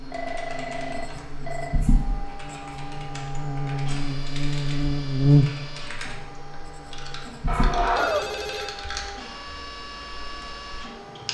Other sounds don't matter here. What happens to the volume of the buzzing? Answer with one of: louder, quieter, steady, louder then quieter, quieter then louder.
louder then quieter.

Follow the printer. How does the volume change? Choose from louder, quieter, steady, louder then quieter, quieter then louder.
louder then quieter.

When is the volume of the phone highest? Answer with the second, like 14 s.
8 s.